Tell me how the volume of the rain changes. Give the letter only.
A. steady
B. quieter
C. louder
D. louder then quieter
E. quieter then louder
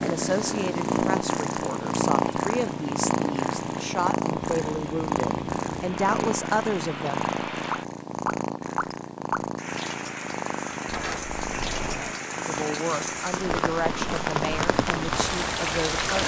C.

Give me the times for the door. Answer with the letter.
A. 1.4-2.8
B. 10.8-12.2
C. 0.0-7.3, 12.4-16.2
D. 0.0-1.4
B.